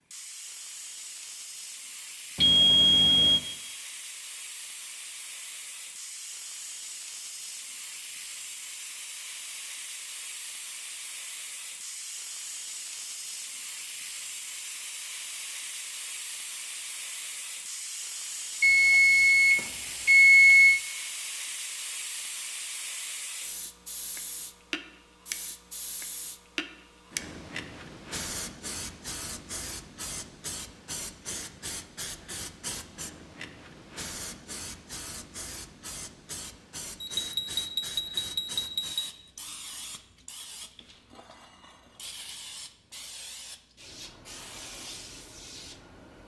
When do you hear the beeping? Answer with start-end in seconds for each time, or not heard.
2.4-3.4, 18.6-20.8, 37.0-39.1.